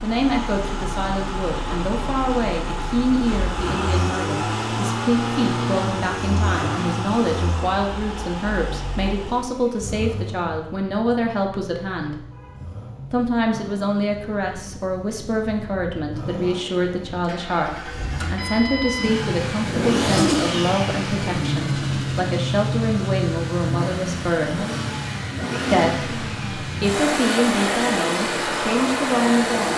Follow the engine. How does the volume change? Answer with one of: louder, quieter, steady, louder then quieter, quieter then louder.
quieter then louder.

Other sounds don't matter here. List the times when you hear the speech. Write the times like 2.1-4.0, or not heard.
0.0-12.2, 13.1-24.6, 25.7-29.7.